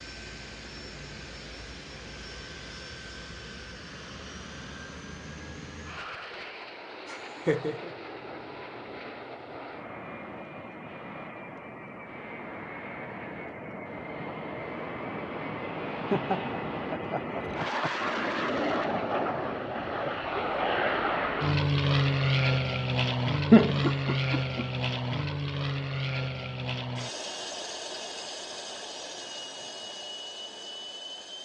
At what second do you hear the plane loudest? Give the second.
22 s.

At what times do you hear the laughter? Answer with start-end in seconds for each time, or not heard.
7.0-7.9, 15.9-18.1, 23.5-24.6.